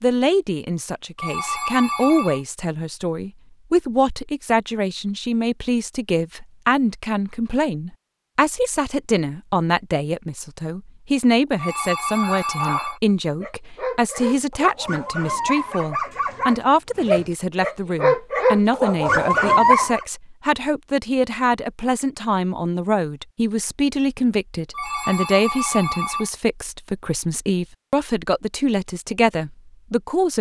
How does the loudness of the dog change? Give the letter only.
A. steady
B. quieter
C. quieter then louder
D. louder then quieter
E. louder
E.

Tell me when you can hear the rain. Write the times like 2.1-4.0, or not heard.
not heard.